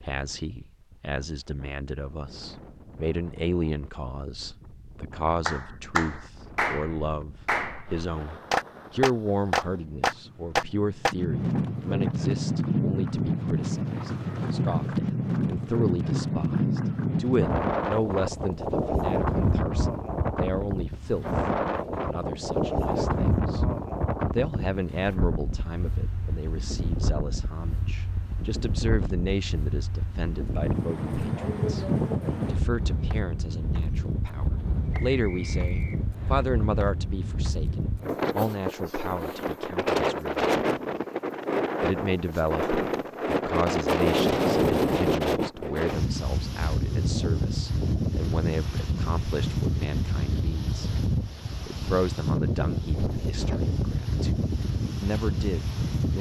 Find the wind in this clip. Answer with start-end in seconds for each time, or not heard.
0.0-56.1.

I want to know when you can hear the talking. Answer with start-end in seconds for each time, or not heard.
0.0-21.4, 22.1-23.6, 24.3-40.5, 41.8-50.8, 51.6-54.4, 55.0-56.1.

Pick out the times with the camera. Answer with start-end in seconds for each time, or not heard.
not heard.